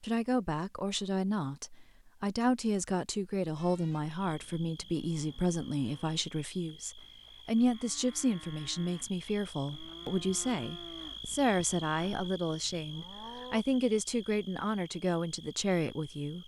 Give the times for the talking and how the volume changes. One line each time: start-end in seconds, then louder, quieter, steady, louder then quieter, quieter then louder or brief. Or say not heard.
0.0-16.4 steady.